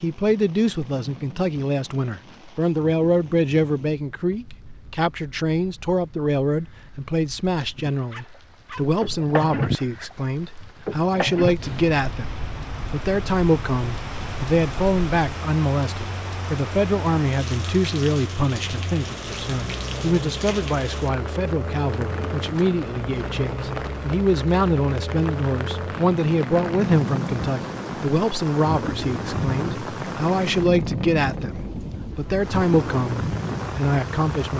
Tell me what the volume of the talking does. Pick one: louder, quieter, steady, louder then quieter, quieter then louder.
steady.